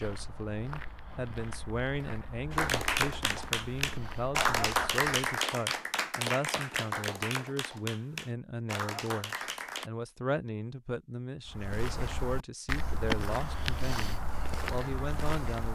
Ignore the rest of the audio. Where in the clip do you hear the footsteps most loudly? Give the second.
13 s.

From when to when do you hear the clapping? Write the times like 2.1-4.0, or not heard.
2.5-9.9.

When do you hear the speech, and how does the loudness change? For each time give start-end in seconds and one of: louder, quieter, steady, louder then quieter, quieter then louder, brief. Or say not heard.
0.0-15.6 steady.